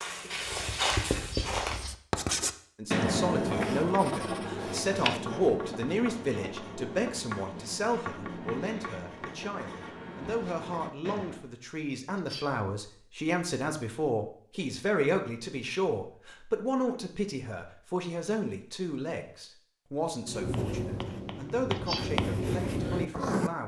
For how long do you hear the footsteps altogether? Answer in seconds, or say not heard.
2 s.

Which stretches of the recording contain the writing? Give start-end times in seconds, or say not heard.
0.4-11.4, 20.2-23.5.